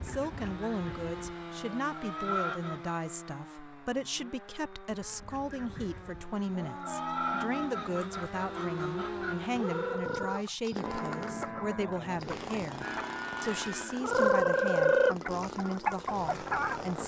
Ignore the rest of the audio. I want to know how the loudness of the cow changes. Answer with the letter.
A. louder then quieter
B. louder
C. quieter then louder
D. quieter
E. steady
E.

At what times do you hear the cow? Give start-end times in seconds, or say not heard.
6.5-14.2.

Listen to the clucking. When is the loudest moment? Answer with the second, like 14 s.
15 s.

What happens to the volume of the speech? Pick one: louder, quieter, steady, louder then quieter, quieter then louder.
steady.